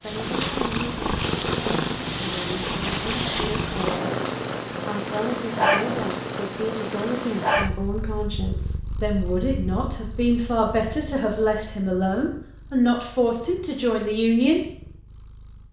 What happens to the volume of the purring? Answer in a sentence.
The volume of the purring goes down.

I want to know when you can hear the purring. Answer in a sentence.
The purring can be heard from 0.0 to 15.6 s.